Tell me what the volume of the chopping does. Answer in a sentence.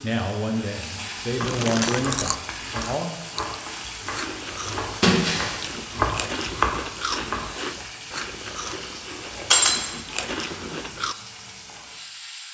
The loudness of the chopping goes up.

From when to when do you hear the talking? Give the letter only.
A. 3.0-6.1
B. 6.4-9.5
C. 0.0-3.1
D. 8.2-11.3
C.